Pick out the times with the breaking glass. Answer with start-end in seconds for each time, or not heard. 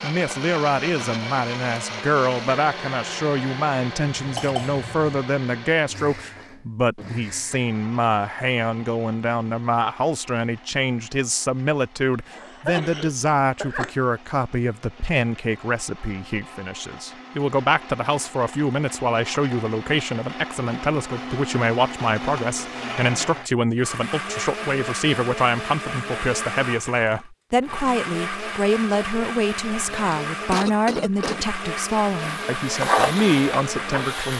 not heard.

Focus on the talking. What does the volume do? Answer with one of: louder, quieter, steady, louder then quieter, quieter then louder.
steady.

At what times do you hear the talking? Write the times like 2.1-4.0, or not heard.
0.0-34.3.